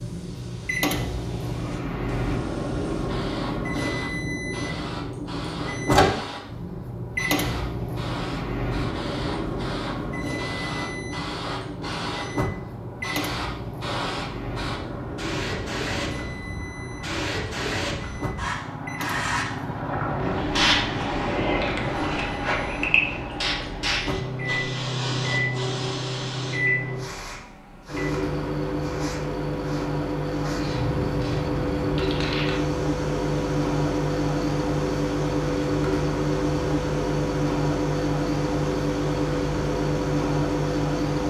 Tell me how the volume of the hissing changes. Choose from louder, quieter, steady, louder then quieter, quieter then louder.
louder then quieter.